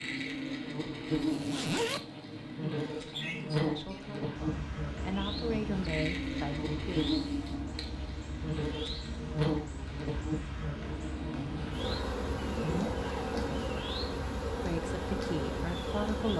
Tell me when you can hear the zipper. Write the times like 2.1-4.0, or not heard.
1.2-2.0, 12.3-13.6.